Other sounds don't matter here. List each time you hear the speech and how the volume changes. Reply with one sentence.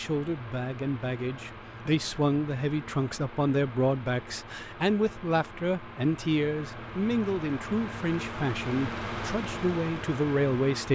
You can hear the speech from 0.0 to 10.8 s, at a steady volume.